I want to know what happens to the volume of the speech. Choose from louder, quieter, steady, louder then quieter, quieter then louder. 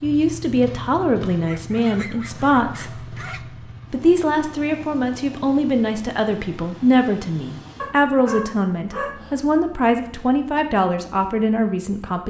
steady.